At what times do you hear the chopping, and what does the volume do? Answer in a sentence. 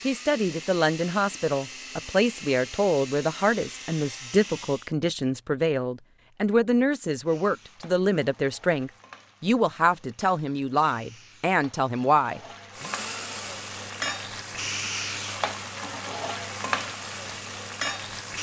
The chopping can't be heard in this clip.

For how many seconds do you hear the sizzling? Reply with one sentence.
You can hear the sizzling for 11 seconds altogether.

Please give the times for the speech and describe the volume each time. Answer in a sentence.
You can hear the speech from 0.0 to 12.8 s, at a steady volume.